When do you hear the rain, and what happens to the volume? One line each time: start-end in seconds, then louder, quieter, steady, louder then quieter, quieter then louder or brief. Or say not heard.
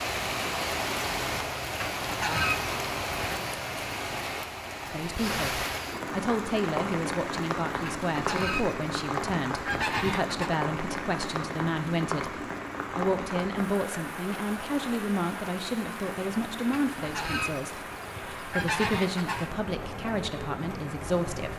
0.0-21.5 quieter.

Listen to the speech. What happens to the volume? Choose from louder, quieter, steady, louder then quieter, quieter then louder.
steady.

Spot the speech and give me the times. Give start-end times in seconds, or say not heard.
4.8-21.5.